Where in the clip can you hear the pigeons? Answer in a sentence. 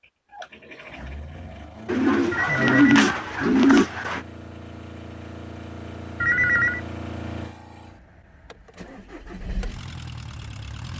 The pigeons can be heard from 1.9 to 4.2 s.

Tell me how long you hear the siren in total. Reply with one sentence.
The siren can't be heard in this clip.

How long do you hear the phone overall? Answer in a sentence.
The phone can be heard for 2 seconds in total.